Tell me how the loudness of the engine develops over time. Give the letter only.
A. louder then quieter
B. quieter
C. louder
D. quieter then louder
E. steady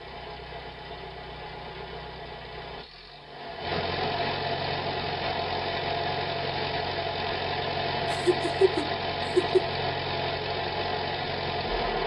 C.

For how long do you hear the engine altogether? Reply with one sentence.
The engine can be heard for 12 seconds in total.